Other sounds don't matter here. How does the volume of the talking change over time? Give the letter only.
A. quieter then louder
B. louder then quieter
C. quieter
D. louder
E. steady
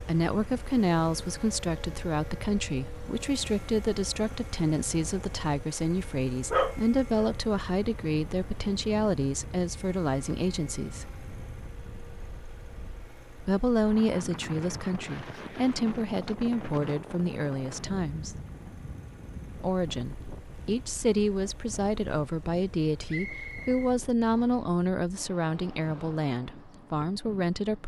E.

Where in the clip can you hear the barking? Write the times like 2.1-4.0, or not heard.
6.5-7.3.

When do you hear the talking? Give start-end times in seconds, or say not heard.
0.0-11.2, 13.4-18.4, 19.6-27.8.